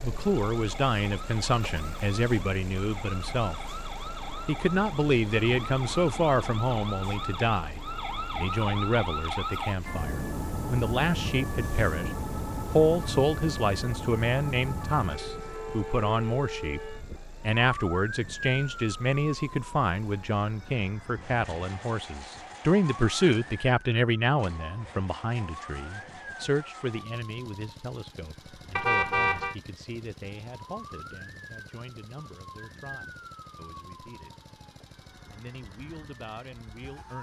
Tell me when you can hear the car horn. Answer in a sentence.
You can hear the car horn from 28.8 to 29.6 s.